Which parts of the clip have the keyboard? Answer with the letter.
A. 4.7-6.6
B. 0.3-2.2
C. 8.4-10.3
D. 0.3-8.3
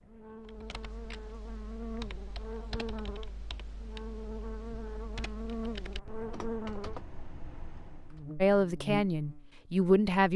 D.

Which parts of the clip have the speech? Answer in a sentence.
The speech can be heard from 8.4 to 10.3 s.